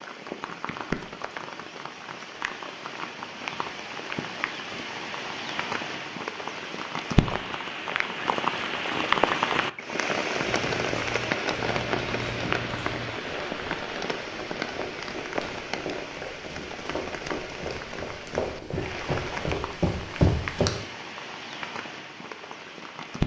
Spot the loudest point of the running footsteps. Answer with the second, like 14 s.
20 s.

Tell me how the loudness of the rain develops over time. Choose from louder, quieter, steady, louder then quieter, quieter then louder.
louder then quieter.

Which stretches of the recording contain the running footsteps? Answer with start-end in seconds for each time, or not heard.
10.4-20.7.